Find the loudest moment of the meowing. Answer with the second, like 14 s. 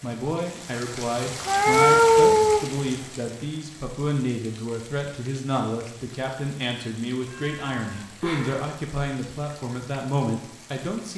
2 s.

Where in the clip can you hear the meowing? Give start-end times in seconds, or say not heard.
1.4-2.6, 7.2-8.7.